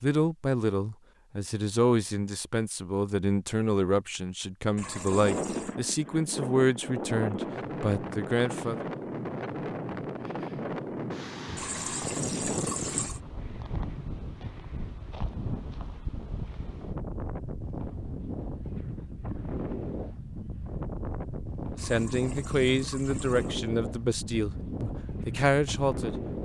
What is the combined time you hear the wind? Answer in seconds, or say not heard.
21 s.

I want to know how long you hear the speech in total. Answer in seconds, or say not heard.
13 s.